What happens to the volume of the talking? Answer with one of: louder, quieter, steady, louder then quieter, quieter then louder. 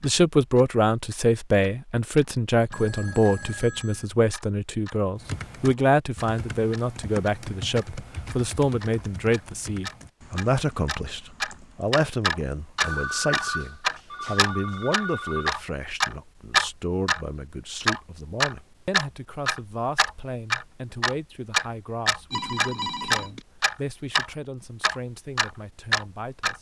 quieter.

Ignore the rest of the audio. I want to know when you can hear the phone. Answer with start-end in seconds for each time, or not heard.
2.7-4.0, 12.8-15.6, 22.3-23.4.